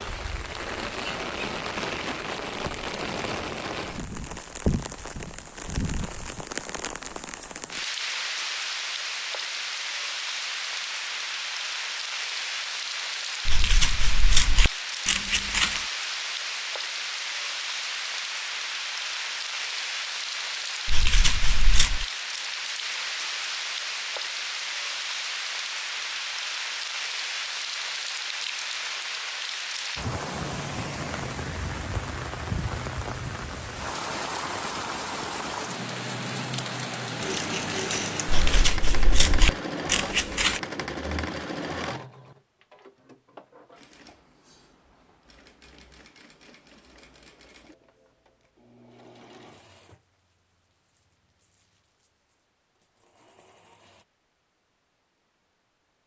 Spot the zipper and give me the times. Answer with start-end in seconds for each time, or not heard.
not heard.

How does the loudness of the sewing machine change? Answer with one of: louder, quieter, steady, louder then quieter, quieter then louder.
quieter.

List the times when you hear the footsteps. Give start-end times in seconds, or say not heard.
not heard.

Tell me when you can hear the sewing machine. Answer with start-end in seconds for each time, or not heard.
37.2-54.0.